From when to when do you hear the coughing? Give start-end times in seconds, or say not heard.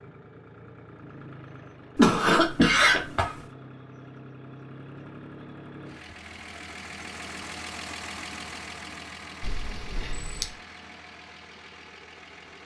1.9-3.4, 9.4-10.5.